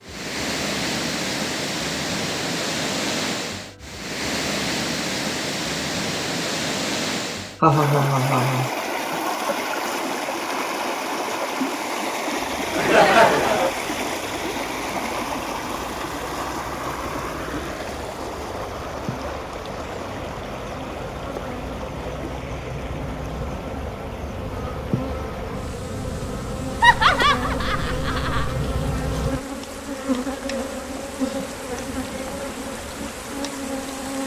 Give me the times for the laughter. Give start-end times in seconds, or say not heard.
7.6-8.7, 12.7-13.8, 26.8-28.6.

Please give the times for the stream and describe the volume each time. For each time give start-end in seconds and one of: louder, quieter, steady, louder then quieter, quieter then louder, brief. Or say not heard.
0.0-34.2 quieter.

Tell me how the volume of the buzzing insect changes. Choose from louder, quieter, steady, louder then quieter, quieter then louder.
louder.